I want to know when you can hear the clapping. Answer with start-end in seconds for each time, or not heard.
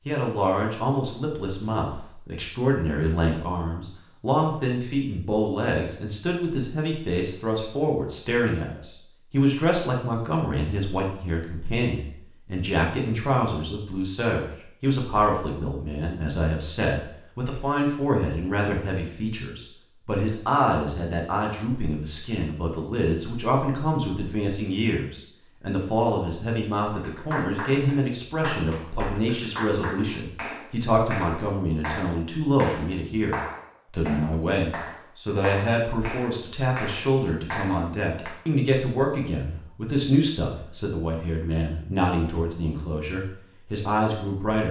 26.9-38.4.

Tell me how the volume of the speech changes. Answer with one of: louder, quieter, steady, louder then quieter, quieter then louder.
steady.